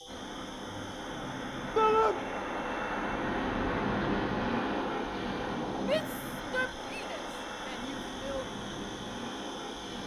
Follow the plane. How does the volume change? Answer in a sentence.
The volume of the plane goes up, then down.